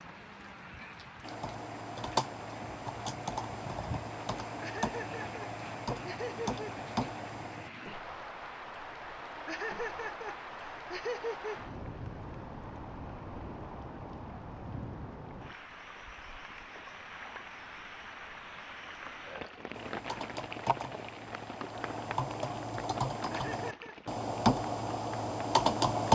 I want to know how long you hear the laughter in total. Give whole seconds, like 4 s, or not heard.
5 s.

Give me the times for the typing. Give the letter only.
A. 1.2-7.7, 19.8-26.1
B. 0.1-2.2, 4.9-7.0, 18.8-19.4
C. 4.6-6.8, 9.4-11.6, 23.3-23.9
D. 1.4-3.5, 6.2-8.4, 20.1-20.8
A.